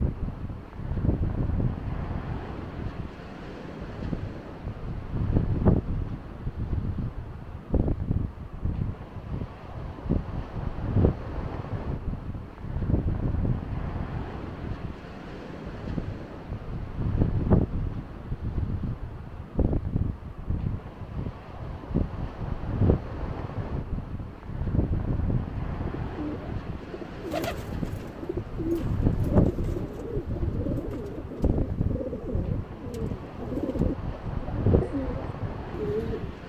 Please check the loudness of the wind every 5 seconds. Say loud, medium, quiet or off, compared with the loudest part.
loud, loud, loud, loud, loud, loud, loud, medium.